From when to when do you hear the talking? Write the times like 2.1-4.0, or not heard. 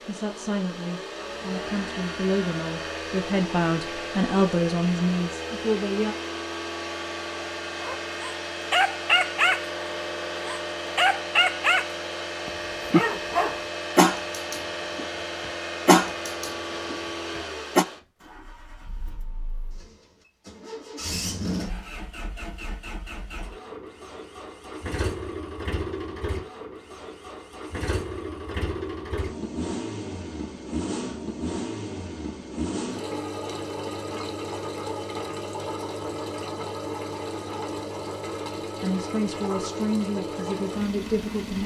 0.0-6.2, 38.8-41.6.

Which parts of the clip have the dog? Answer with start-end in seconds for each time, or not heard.
7.8-9.7, 10.4-17.9.